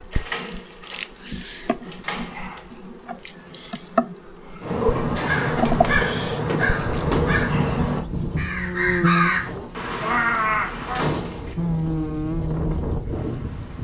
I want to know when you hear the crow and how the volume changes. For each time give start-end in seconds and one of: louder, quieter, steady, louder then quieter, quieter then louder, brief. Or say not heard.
4.6-11.1 steady.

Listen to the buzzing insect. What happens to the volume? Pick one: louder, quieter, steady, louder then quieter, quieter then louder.
louder.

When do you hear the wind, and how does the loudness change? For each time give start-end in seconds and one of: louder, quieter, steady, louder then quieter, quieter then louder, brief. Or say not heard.
6.8-13.7 quieter then louder.